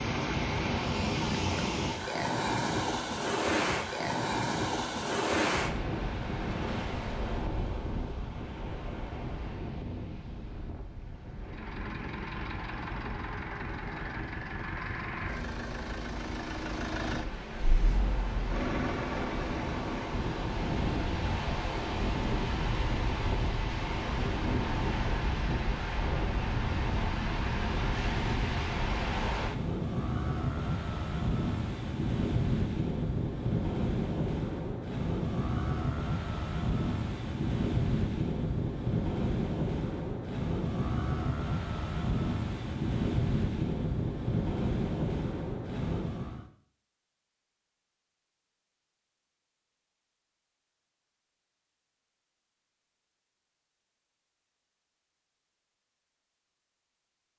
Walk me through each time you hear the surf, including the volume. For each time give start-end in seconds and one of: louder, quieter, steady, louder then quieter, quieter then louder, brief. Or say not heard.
0.0-46.5 quieter then louder.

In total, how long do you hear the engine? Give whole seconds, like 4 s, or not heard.
9 s.